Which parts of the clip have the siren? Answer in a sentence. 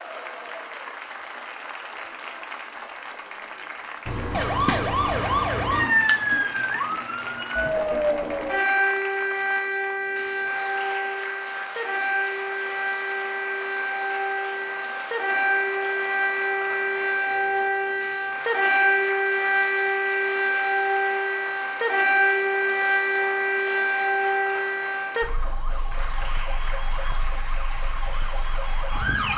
You can hear the siren from 4.0 to 29.3 s.